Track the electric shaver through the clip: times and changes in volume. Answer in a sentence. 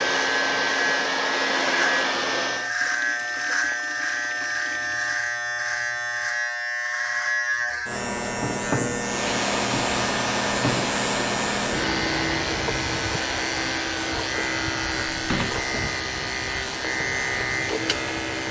The electric shaver can be heard from 0.0 to 18.4 s, at a steady volume.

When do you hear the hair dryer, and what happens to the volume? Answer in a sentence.
The hair dryer can be heard briefly from 0.0 to 2.8 s; and from 9.0 to 18.4 s, getting quieter.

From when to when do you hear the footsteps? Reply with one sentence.
You can't hear the footsteps here.